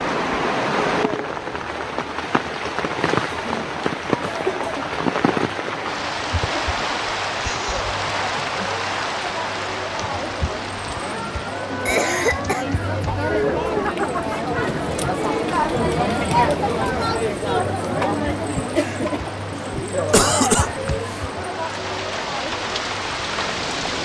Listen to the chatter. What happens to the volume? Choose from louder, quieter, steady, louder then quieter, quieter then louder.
louder then quieter.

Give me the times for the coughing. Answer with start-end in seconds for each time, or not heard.
3.2-5.0, 11.8-12.7, 20.1-21.2.